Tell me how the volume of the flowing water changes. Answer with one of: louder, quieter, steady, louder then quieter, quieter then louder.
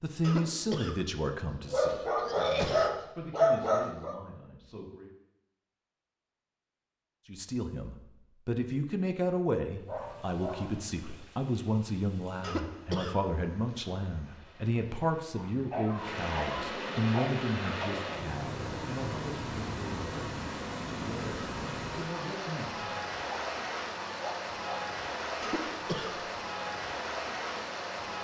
louder.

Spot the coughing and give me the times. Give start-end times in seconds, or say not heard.
0.2-2.9, 12.4-13.8, 25.4-26.2.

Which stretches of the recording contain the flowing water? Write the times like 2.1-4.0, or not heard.
9.8-28.1.